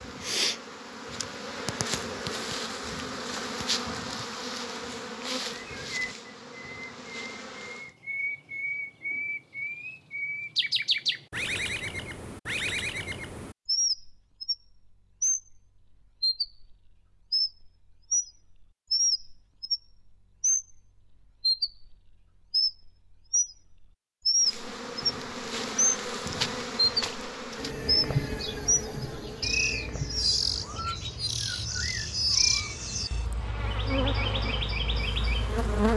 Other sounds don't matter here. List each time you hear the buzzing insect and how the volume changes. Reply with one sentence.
You can hear the buzzing insect from 0.0 to 7.9 s, getting quieter; and from 24.4 to 35.9 s, getting quieter then louder.